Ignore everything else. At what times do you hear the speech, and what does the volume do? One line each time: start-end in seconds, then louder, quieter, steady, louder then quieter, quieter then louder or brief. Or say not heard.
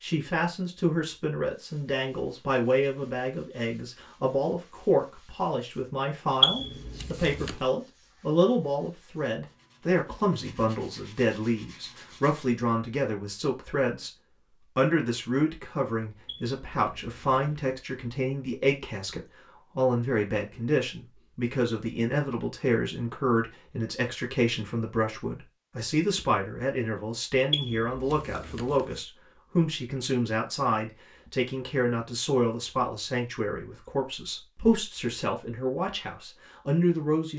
0.0-14.1 steady
14.8-37.3 steady.